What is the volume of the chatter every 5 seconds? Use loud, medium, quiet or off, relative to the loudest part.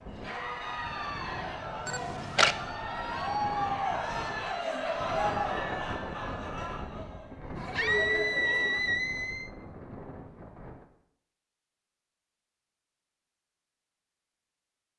loud, loud, off.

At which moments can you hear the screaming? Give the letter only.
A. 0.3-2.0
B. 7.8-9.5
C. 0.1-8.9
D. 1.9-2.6
B.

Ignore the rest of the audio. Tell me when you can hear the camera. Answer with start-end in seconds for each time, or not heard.
1.9-2.6.